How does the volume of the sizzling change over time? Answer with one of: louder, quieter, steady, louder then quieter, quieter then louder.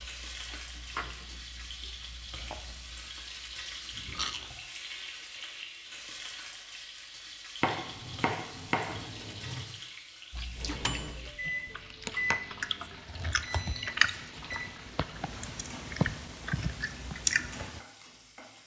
quieter.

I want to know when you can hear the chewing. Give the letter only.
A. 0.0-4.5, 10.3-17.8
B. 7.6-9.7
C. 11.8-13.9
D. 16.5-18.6
A.